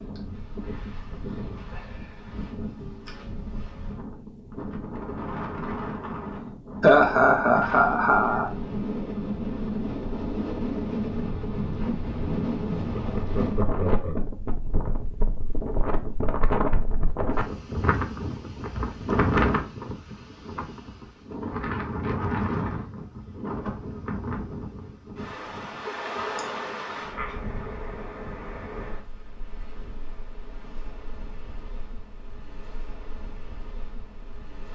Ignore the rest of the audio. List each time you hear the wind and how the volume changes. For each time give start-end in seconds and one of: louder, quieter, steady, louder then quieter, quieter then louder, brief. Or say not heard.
0.0-34.7 louder then quieter.